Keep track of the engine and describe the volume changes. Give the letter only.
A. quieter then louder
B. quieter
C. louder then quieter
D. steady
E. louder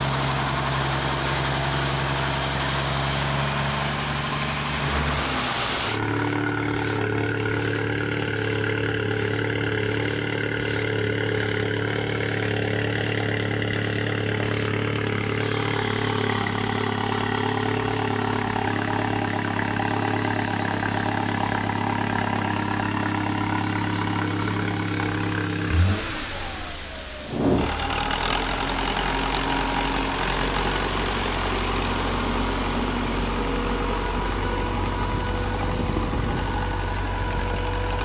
D.